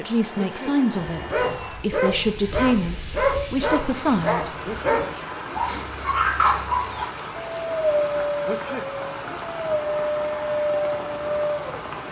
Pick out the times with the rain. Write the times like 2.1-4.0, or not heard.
2.0-12.0.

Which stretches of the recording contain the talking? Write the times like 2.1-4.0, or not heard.
0.0-4.5.